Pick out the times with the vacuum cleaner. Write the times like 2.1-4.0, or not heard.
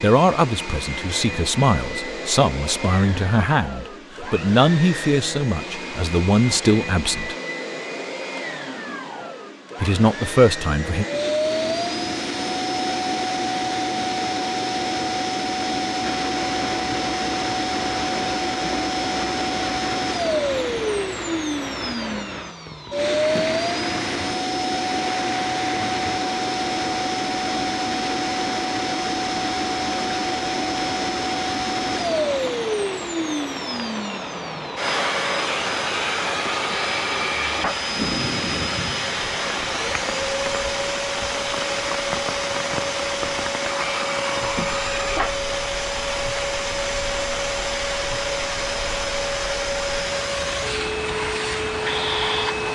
0.0-52.7.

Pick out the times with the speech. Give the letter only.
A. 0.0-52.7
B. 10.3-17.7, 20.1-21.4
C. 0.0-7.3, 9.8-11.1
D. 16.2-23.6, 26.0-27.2
C.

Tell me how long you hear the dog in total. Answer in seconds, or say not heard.
not heard.